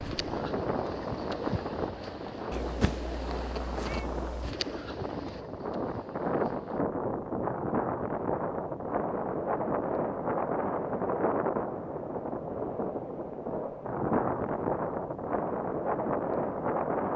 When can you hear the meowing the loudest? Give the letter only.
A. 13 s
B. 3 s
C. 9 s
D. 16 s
B.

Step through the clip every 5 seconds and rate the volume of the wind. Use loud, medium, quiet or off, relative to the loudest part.
medium, loud, loud, loud.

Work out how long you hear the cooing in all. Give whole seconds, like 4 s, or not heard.
7 s.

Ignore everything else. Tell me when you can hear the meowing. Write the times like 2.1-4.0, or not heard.
2.5-4.5.